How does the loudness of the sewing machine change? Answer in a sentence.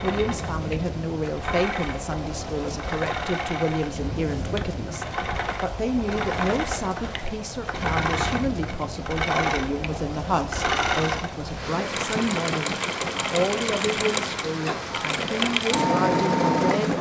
The loudness of the sewing machine goes up.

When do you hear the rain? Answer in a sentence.
The rain can be heard from 0.0 to 16.9 s.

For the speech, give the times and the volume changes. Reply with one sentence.
You can hear the speech from 0.0 to 16.9 s, at a steady volume.